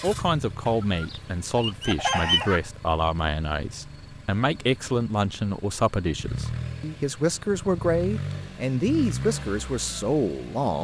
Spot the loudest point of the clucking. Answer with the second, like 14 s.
2 s.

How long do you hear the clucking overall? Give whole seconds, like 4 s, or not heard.
2 s.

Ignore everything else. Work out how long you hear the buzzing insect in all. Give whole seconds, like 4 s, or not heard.
not heard.